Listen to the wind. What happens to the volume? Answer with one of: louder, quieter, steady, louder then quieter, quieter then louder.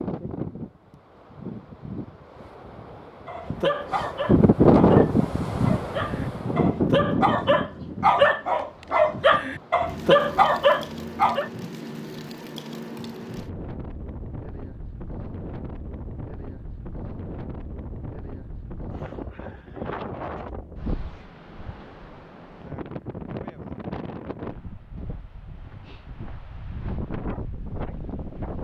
quieter.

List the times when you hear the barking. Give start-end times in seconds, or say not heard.
3.2-11.5.